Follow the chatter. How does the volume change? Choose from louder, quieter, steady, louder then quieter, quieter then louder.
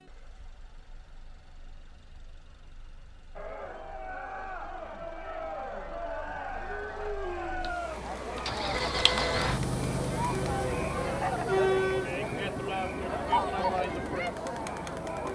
louder.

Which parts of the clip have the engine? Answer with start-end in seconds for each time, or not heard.
0.0-15.2.